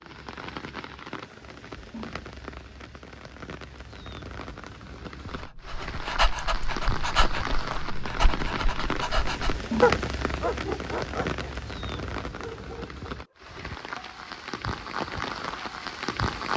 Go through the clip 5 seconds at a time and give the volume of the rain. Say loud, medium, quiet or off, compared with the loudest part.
medium, loud, medium, loud.